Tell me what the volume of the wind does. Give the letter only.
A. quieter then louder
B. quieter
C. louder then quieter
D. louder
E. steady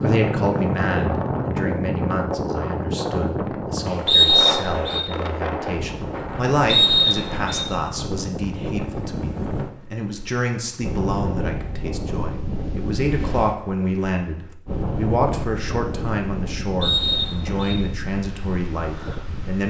B.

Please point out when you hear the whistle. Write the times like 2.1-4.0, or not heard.
4.0-5.0, 6.7-7.7, 16.8-17.8.